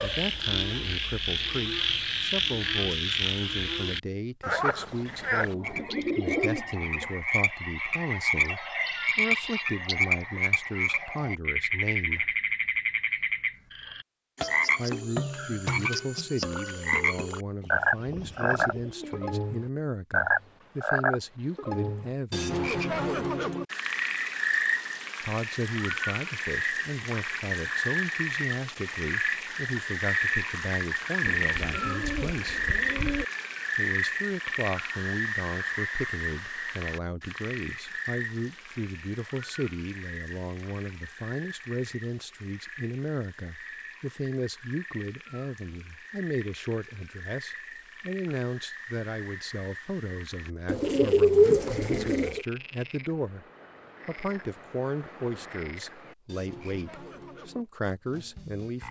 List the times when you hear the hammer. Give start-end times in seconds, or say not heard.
not heard.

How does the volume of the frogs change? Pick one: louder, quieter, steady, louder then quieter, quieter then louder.
quieter.